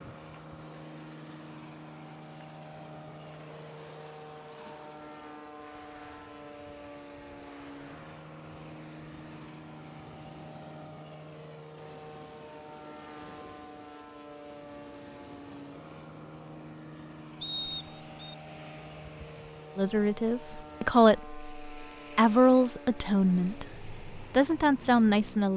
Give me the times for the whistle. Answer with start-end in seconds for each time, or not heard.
17.4-18.4.